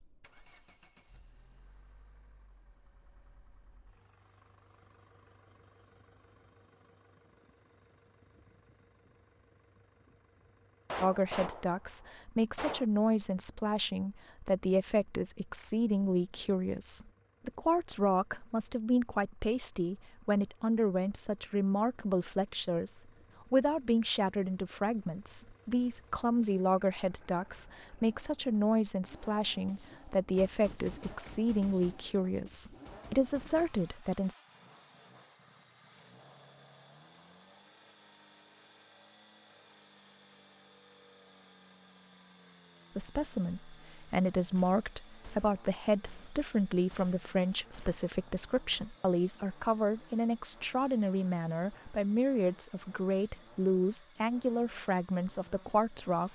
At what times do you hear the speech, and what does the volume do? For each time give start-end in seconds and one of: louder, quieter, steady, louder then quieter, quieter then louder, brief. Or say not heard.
11.0-34.4 steady
43.0-56.3 steady.